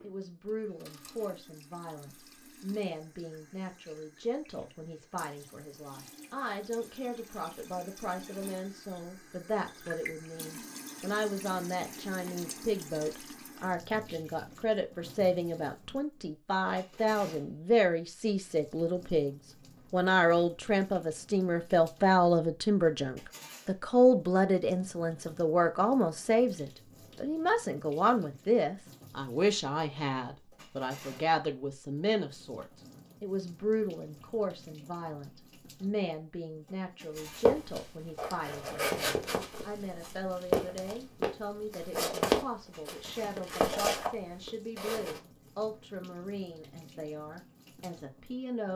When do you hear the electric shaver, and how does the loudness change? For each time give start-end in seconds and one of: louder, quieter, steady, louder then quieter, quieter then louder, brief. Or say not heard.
not heard.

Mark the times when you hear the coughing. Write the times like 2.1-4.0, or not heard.
not heard.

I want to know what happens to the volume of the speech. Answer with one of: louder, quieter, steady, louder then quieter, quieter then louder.
louder then quieter.